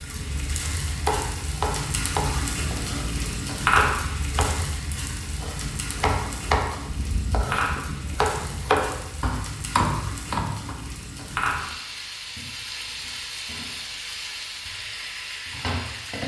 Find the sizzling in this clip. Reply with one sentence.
The sizzling can be heard from 0.0 to 16.2 s.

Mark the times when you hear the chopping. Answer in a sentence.
The chopping can be heard from 0.1 to 10.8 s.